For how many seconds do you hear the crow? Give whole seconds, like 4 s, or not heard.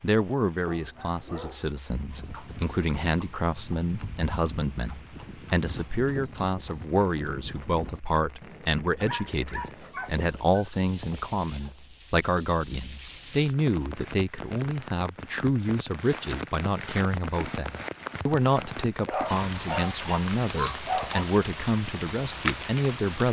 not heard.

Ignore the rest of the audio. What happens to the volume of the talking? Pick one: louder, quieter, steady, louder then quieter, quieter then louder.
steady.